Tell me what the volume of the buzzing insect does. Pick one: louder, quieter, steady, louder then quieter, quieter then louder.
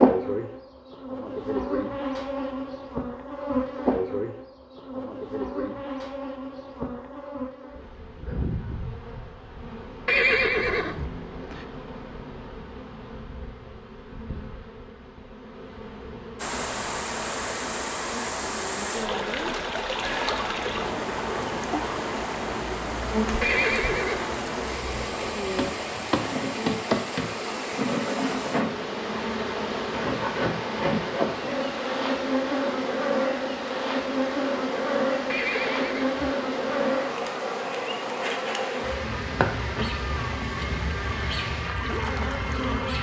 quieter then louder.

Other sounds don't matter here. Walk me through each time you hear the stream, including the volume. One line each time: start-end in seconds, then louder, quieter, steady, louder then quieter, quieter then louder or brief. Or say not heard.
16.4-42.8 quieter.